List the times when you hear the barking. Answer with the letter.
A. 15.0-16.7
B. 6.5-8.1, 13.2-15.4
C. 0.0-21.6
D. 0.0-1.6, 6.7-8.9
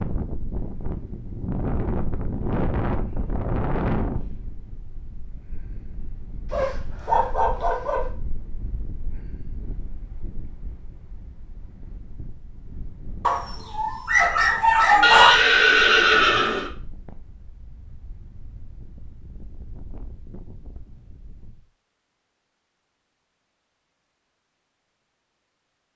B.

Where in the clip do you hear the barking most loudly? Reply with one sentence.
The volume of the barking peaks at 15 seconds.